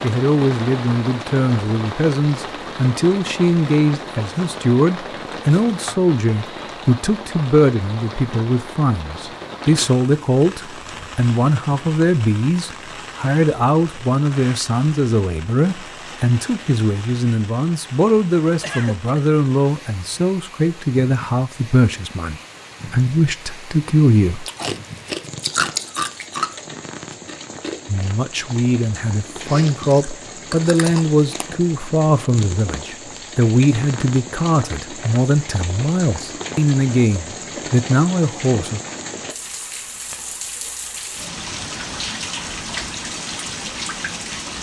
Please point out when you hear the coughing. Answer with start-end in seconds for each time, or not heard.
18.6-19.2.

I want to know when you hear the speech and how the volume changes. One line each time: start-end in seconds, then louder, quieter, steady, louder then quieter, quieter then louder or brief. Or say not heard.
0.0-24.4 steady
27.9-38.8 steady.